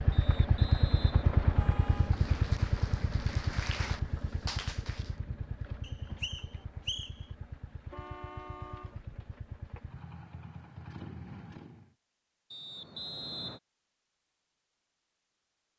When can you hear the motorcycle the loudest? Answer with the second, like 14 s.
1 s.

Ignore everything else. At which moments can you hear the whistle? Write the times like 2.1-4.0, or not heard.
0.1-1.8, 5.8-7.2, 12.5-13.6.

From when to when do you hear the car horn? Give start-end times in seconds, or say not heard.
1.6-2.2, 7.9-9.0.